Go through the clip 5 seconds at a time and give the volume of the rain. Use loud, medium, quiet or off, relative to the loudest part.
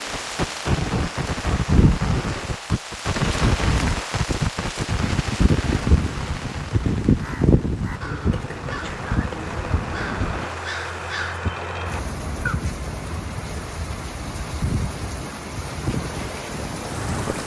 loud, loud, medium, medium.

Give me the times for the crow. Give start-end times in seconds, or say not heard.
7.2-12.6.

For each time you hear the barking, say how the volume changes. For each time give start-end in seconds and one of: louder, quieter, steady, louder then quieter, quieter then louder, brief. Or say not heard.
not heard.